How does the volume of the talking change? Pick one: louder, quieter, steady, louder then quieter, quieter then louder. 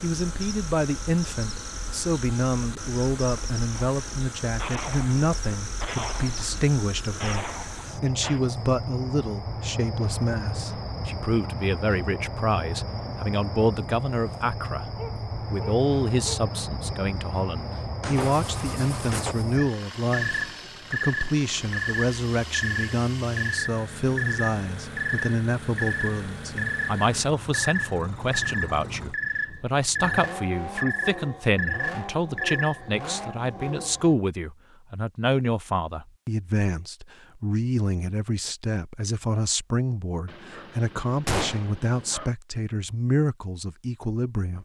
steady.